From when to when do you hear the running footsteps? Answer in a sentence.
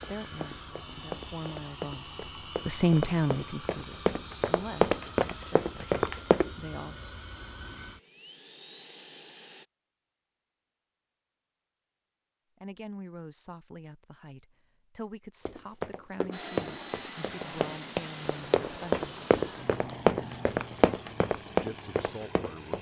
You can hear the running footsteps from 0.0 to 6.5 s and from 15.4 to 22.7 s.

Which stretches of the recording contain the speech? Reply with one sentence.
You can hear the speech from 0.0 to 7.0 s, from 12.6 to 19.1 s and from 21.6 to 22.7 s.